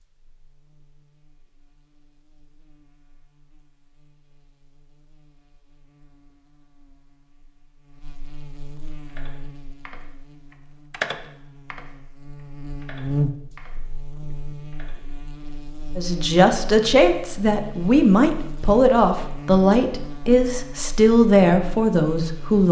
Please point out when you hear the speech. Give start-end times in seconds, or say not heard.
15.9-22.6.